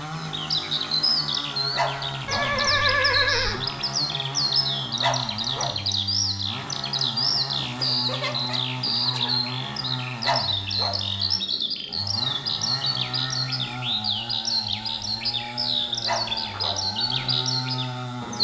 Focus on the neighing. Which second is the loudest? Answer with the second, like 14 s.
3 s.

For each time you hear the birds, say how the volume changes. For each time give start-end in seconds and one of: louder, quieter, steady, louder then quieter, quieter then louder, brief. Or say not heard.
0.0-18.4 steady.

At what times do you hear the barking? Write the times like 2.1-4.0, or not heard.
1.8-2.5, 5.0-5.8, 10.2-11.0, 16.1-16.8.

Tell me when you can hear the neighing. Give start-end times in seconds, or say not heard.
2.2-3.6, 7.5-9.4, 15.6-16.9.